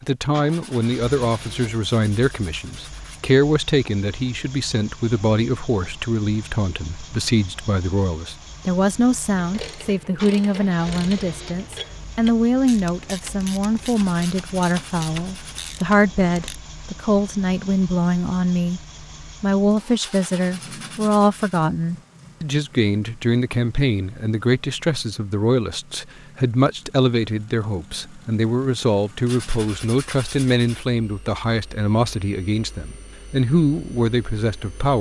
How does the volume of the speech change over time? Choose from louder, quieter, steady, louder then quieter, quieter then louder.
steady.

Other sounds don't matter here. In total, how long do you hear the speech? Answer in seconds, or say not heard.
34 s.